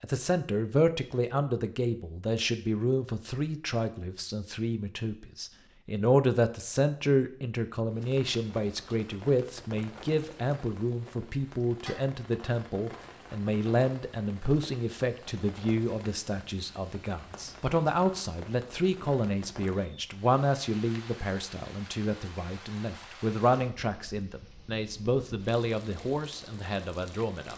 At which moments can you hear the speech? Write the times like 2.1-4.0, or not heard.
0.0-27.5.